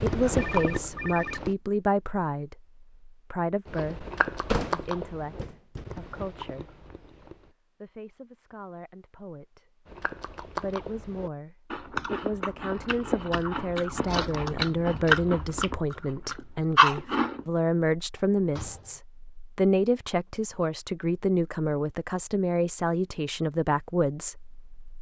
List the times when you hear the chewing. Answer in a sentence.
The chewing can be heard from 0.0 to 1.6 s, from 3.6 to 7.5 s and from 9.8 to 17.4 s.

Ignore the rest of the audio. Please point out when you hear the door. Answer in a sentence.
You can hear the door from 4.5 to 5.8 s and from 18.1 to 19.0 s.